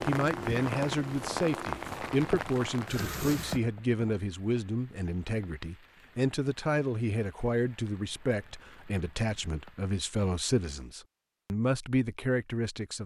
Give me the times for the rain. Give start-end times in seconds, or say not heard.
0.0-10.9.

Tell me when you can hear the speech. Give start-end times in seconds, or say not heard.
0.0-13.0.